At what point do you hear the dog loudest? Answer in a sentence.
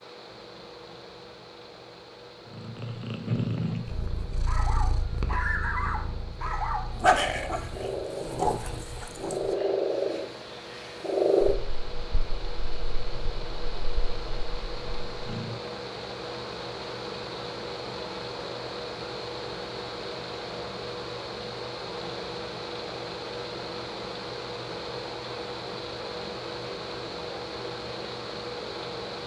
The volume of the dog peaks at 7 seconds.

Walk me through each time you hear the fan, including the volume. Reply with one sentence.
You can hear the fan from 0.0 to 29.2 s, getting louder.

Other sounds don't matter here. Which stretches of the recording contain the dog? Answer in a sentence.
The dog can be heard from 4.5 to 9.6 s.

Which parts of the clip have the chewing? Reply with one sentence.
The chewing can't be heard in this clip.